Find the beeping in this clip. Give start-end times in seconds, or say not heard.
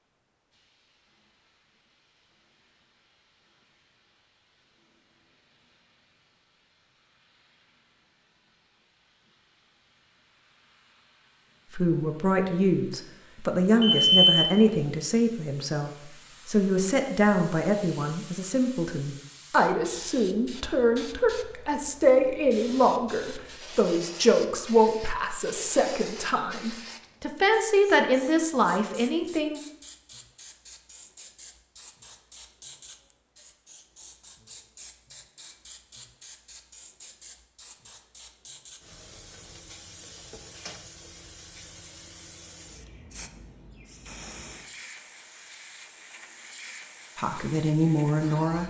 13.8-14.6.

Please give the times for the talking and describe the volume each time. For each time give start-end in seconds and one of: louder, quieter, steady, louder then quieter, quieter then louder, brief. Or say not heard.
11.7-29.6 steady
47.1-48.6 brief.